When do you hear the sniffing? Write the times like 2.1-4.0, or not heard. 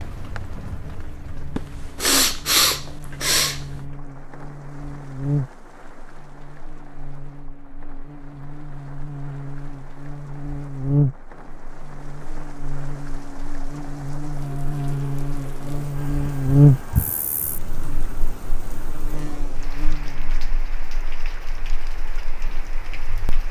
1.6-3.8, 15.9-17.2.